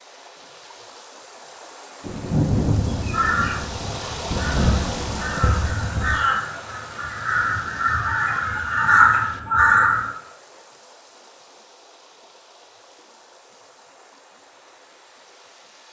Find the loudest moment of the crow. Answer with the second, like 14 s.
9 s.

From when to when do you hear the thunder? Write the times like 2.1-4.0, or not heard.
2.0-6.2.